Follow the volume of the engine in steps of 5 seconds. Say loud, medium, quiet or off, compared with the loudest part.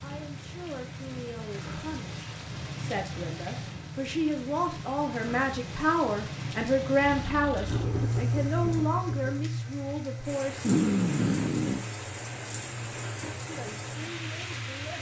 off, loud, medium.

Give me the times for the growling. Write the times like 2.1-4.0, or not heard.
10.6-11.8.